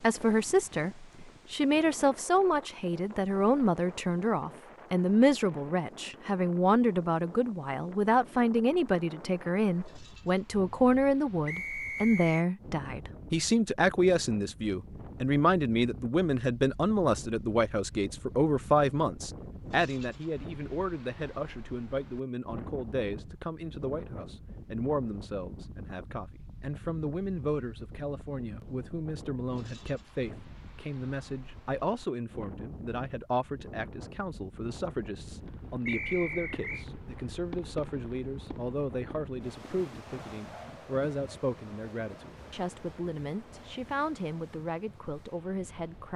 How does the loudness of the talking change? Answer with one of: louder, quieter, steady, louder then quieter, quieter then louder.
quieter.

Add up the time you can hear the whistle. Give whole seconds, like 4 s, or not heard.
2 s.